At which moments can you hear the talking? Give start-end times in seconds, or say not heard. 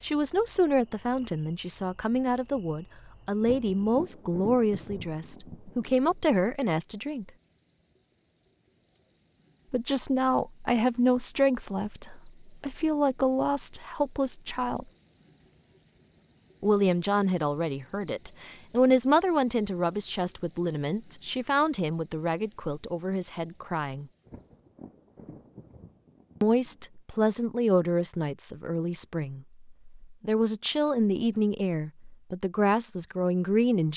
0.0-7.3, 9.7-14.8, 16.6-24.1, 26.4-33.9.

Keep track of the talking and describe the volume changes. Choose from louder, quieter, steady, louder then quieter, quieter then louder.
steady.